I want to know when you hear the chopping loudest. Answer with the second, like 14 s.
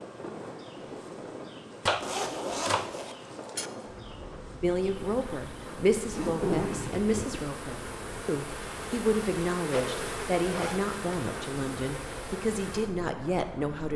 2 s.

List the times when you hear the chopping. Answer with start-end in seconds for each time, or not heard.
1.9-3.7.